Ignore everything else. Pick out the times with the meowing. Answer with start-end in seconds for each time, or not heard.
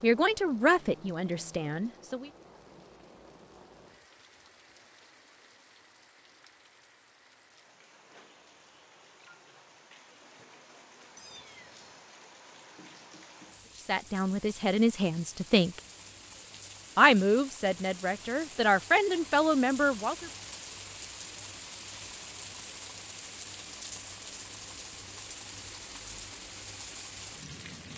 11.2-12.1.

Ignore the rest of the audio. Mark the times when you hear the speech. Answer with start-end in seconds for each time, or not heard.
0.0-2.3, 13.8-15.8, 16.9-20.3.